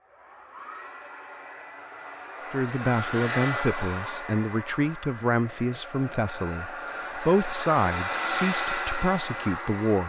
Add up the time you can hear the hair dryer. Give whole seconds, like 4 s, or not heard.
10 s.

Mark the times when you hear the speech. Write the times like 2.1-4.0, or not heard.
2.5-10.0.